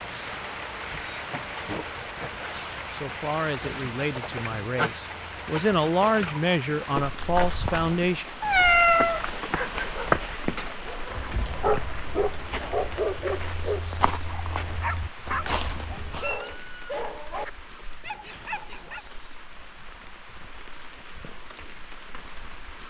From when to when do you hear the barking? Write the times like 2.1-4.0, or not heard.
9.3-19.0.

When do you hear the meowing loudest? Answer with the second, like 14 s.
9 s.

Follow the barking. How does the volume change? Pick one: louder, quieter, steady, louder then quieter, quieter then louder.
louder then quieter.